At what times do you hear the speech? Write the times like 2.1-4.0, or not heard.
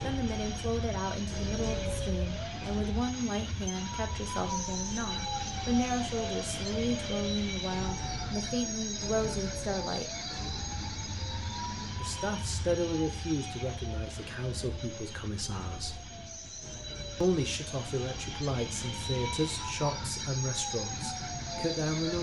0.0-10.1, 11.9-16.0, 17.2-22.1.